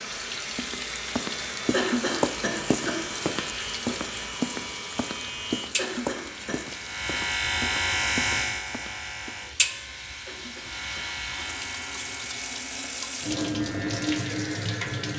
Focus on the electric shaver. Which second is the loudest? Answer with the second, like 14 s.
8 s.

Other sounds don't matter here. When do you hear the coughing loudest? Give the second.
2 s.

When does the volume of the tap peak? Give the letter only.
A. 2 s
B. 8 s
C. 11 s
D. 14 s
D.